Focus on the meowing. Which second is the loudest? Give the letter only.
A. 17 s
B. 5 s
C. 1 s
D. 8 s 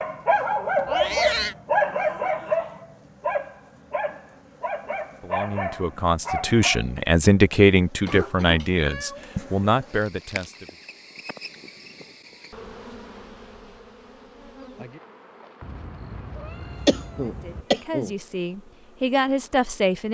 C.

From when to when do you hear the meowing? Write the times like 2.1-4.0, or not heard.
0.8-1.6, 8.8-9.6, 15.6-17.6.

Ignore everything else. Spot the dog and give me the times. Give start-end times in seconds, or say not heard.
0.0-6.8.